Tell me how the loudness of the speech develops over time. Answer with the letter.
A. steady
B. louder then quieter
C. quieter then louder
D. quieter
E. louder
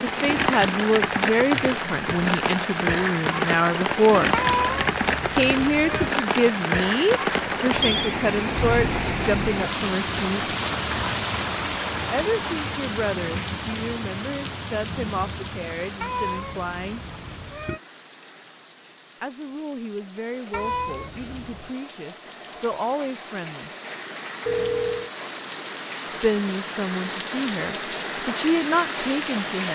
C.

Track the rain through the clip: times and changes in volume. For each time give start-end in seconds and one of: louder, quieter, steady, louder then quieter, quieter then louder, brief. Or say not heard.
0.0-29.7 quieter then louder.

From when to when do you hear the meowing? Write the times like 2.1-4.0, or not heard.
4.3-6.1, 16.0-17.8, 20.5-21.7.